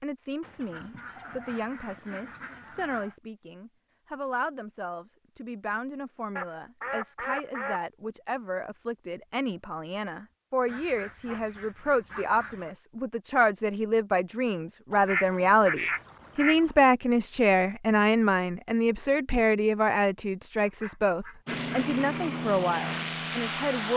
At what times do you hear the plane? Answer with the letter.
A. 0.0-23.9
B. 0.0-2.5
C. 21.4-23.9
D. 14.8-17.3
C.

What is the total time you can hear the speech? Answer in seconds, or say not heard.
24 s.